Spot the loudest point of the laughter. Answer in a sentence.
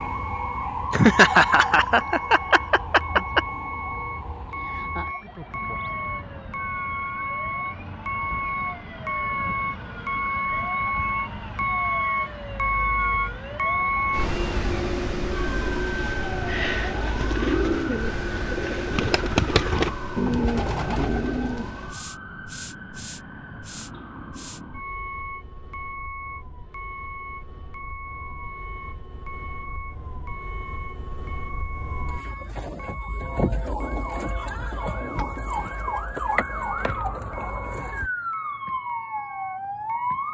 The loudest moment of the laughter is at 1 second.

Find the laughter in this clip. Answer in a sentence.
You can hear the laughter from 0.9 to 3.4 s.